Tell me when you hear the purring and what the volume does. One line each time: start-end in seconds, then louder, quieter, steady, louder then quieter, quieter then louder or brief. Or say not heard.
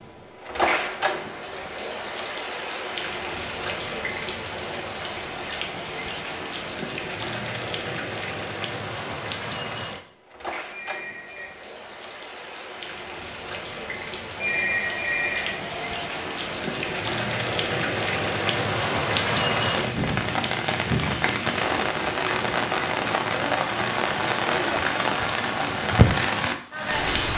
not heard.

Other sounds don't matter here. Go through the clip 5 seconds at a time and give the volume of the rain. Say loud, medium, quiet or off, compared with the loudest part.
medium, medium, quiet, loud, loud, loud.